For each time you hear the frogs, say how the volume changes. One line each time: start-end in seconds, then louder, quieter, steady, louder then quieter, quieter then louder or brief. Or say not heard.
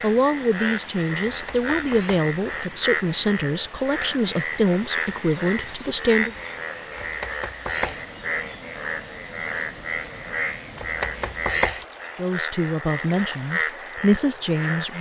0.0-14.9 steady.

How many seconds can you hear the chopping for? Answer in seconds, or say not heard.
3 s.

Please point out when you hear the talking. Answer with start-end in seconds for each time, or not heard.
0.0-6.3, 12.2-14.9.